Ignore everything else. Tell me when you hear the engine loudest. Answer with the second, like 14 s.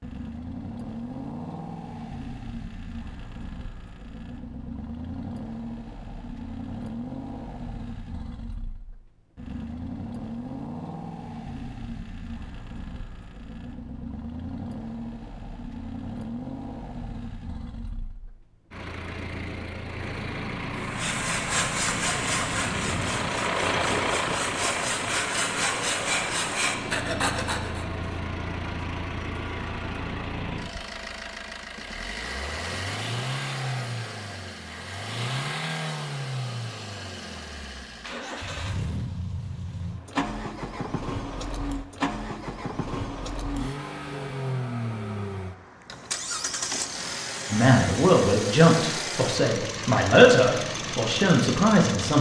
24 s.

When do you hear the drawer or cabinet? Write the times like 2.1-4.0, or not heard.
not heard.